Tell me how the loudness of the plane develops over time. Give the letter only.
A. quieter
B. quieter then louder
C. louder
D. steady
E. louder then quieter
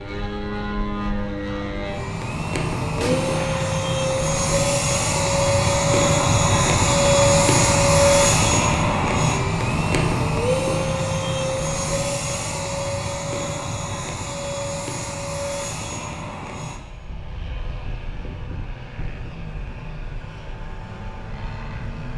E.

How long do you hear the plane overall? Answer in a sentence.
The plane can be heard for 22 seconds in total.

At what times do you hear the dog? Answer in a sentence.
You can't hear the dog here.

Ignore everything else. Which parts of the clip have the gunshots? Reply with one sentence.
You can hear the gunshots from 3.0 to 3.8 s.